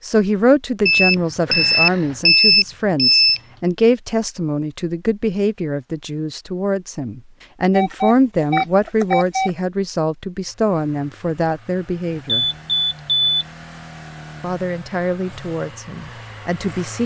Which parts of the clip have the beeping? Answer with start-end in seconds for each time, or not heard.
0.8-3.4, 7.7-9.5, 12.2-13.3.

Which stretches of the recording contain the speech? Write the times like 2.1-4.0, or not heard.
0.0-12.4, 14.4-17.0.